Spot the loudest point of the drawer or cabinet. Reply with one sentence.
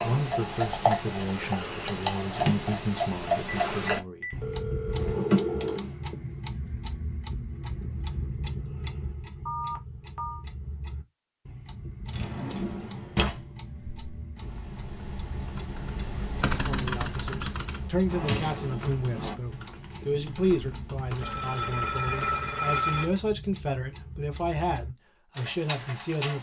The volume of the drawer or cabinet peaks at 5 seconds.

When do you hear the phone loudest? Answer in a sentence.
The volume of the phone peaks at 23 seconds.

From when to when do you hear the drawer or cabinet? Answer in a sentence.
The drawer or cabinet can be heard from 4.8 to 6.0 s, from 12.1 to 14.3 s and from 18.1 to 19.4 s.